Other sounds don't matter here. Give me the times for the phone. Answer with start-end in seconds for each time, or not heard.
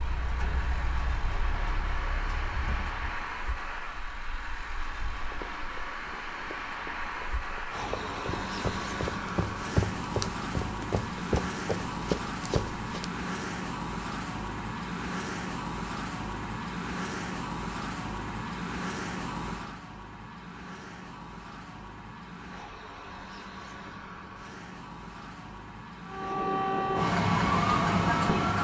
not heard.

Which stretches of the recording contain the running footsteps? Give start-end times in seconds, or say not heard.
5.2-13.1.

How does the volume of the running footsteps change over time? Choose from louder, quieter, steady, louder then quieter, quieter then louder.
louder.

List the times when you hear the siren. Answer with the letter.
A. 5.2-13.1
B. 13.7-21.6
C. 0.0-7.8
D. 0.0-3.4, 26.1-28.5
D.